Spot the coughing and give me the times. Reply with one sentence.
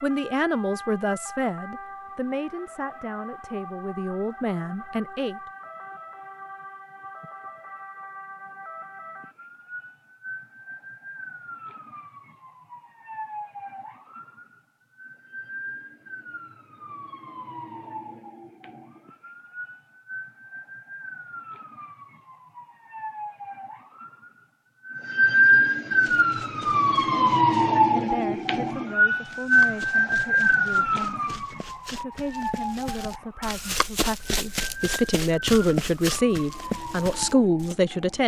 The coughing can't be heard in this clip.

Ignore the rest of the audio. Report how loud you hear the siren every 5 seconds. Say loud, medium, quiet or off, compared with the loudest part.
quiet, quiet, quiet, quiet, quiet, loud, medium, quiet.